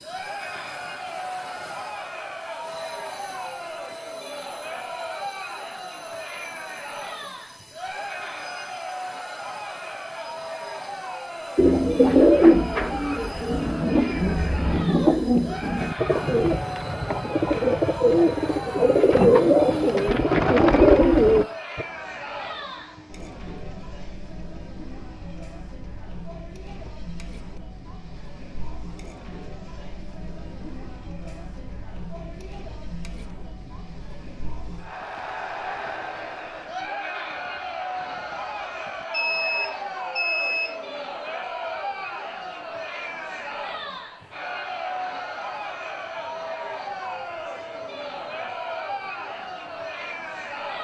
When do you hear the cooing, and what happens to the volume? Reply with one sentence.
The cooing can be heard from 11.6 to 21.9 s, getting quieter then louder.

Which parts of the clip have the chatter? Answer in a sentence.
You can hear the chatter from 0.0 to 50.7 s.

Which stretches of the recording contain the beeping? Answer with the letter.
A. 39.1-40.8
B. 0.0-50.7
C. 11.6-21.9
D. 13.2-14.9
A.